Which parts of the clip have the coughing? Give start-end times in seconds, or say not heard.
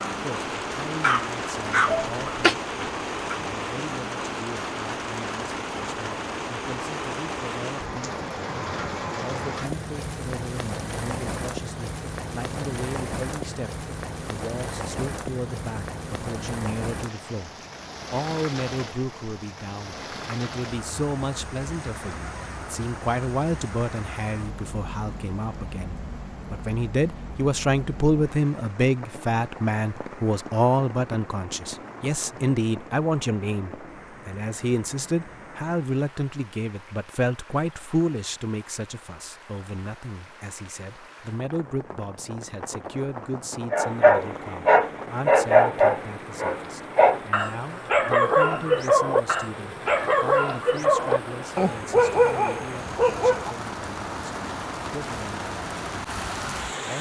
1.9-2.5.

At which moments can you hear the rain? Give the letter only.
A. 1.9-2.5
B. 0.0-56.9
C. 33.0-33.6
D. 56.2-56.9
B.